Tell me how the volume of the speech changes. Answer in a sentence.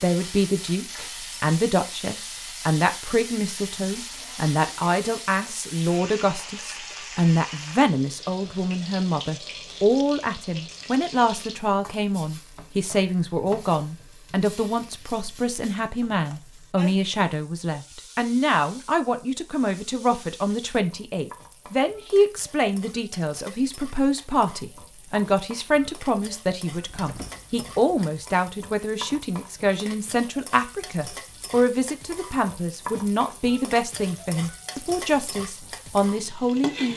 The loudness of the speech stays about the same.